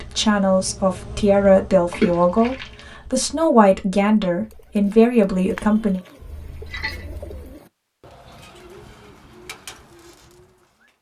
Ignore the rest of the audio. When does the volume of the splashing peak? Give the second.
2 s.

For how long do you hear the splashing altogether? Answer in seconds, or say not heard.
2 s.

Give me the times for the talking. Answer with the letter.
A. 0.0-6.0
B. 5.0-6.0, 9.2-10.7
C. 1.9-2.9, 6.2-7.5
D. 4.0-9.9
A.